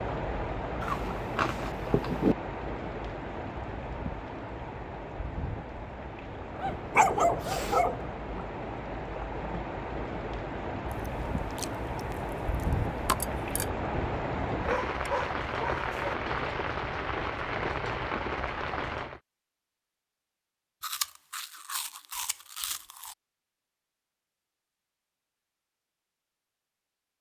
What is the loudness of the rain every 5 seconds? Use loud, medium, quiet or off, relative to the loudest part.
loud, medium, loud, loud, off, off.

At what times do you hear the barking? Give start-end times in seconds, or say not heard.
6.6-8.1, 14.6-16.1.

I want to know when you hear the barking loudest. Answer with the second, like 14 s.
7 s.